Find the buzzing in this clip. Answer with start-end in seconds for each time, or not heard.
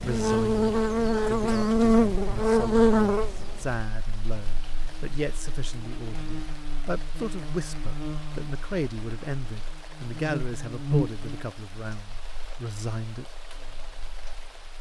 0.0-14.7.